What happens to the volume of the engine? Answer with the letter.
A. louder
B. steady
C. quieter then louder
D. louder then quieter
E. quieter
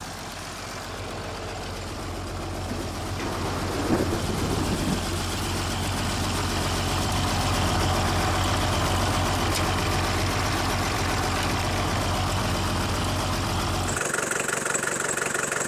A.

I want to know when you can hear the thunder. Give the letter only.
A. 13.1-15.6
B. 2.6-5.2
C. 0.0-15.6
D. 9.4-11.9
B.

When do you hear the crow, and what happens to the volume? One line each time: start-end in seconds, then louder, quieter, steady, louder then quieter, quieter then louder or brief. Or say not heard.
not heard.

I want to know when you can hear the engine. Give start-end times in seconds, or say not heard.
0.0-15.6.